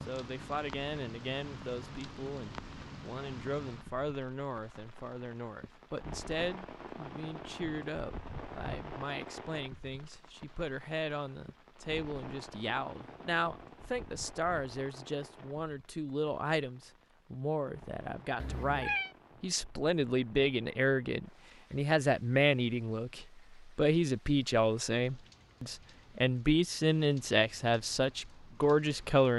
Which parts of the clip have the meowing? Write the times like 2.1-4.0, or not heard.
18.4-19.1.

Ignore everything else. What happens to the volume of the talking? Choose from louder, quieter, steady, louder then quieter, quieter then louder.
louder.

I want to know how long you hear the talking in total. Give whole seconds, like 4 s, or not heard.
29 s.